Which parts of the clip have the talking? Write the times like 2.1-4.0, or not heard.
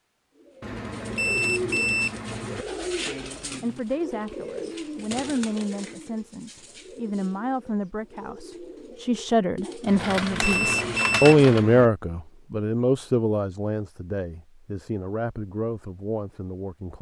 3.6-16.9.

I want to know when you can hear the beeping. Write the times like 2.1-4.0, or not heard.
0.6-2.6, 9.8-11.9.